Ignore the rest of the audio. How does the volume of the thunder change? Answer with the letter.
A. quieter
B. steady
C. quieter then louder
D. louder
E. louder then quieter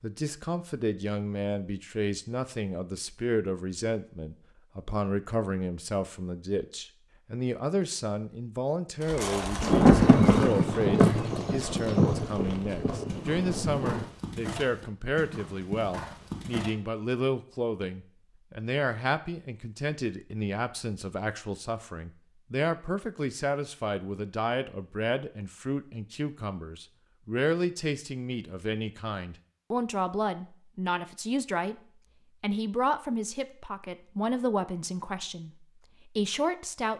A.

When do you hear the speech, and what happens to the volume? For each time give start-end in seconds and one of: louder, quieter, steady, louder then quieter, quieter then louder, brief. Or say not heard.
0.0-36.9 steady.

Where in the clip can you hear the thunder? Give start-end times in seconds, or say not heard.
9.6-14.1.